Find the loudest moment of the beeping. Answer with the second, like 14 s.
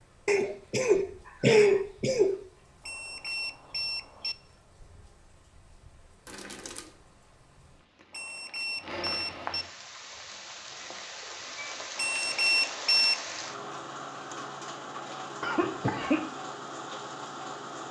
13 s.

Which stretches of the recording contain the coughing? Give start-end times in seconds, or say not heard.
0.2-2.4, 6.2-6.8, 15.4-16.2.